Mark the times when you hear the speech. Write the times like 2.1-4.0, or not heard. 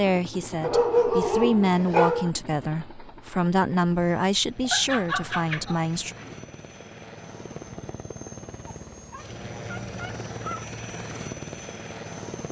0.0-6.2.